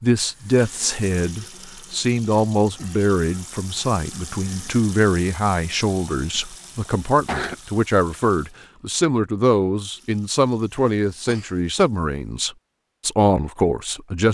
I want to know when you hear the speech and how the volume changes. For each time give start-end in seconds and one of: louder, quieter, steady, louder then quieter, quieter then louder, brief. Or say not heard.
0.0-14.2 steady.